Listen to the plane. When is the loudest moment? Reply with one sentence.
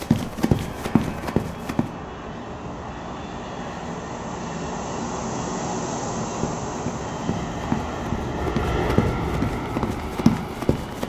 The volume of the plane peaks at 9 seconds.